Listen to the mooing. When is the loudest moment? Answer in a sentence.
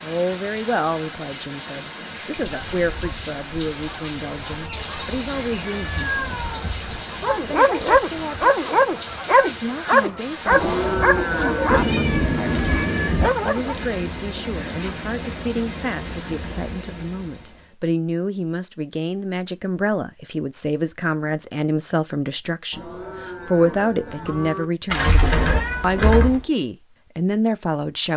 The loudest moment of the mooing is at 11 seconds.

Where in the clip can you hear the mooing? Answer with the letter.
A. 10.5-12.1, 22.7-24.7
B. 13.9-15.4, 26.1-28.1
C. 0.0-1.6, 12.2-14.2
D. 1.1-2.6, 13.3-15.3
A.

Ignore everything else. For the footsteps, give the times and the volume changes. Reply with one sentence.
You can't hear the footsteps here.